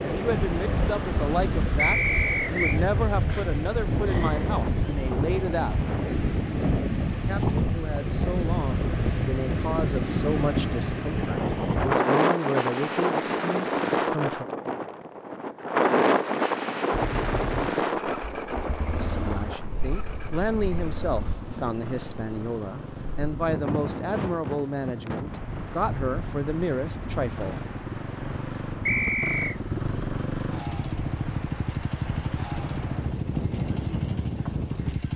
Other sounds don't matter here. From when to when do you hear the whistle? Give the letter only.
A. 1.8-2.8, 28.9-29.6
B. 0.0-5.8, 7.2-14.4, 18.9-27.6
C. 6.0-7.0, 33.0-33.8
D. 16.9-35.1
A.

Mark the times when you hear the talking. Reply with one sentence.
The talking can be heard from 0.0 to 5.8 s, from 7.2 to 14.4 s and from 18.9 to 27.6 s.